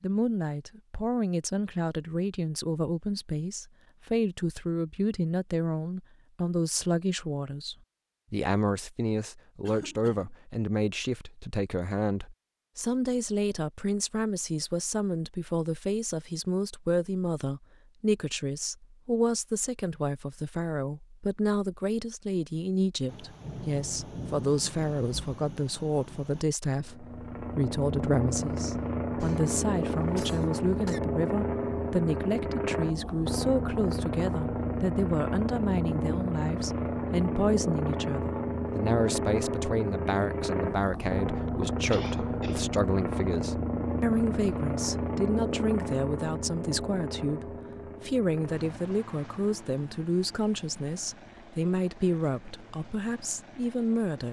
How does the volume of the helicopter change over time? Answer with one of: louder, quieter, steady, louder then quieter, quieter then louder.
quieter.